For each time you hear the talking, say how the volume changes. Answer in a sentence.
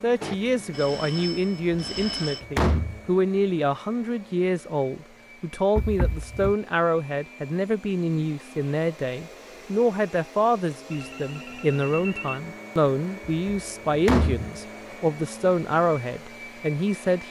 You can hear the talking from 0.0 to 17.2 s, at a steady volume.